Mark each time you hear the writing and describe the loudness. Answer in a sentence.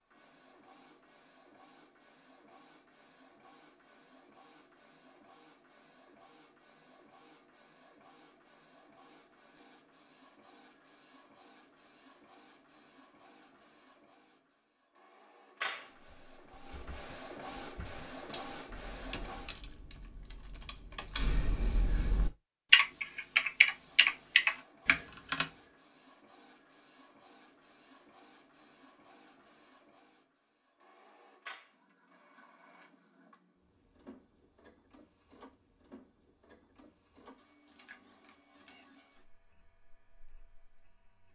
You can't hear the writing here.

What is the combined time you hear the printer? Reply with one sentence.
The printer can be heard for 37 seconds in total.